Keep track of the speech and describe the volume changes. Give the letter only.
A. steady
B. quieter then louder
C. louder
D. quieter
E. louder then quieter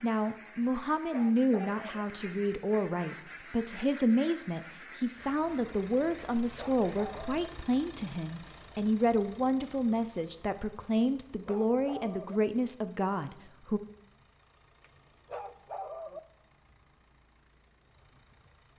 A.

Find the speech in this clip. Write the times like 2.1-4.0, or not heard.
0.0-13.8.